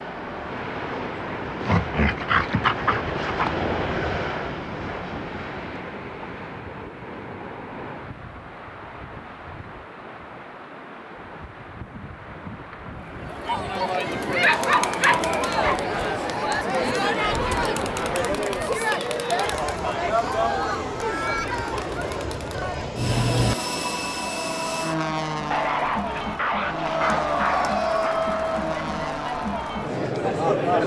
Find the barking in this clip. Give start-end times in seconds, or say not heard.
1.6-3.5, 14.2-15.8, 25.5-28.2.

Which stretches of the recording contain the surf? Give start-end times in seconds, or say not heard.
0.0-18.3.